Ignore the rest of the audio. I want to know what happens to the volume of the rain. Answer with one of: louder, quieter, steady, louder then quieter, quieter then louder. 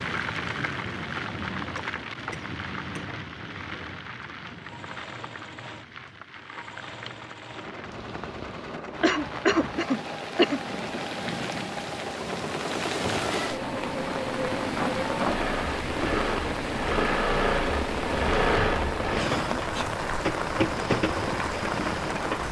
quieter then louder.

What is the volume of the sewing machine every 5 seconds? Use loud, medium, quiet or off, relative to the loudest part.
quiet, quiet, medium, loud, loud.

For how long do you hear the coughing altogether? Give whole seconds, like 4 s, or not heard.
4 s.